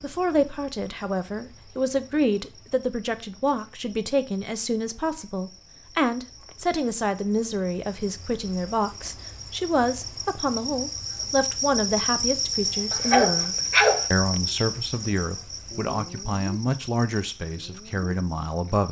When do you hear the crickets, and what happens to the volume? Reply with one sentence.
You can hear the crickets from 0.0 to 18.8 s, getting louder then quieter.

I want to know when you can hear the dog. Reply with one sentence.
The dog can be heard from 12.9 to 14.1 s.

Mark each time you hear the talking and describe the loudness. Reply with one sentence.
You can hear the talking from 0.0 to 18.8 s, at a steady volume.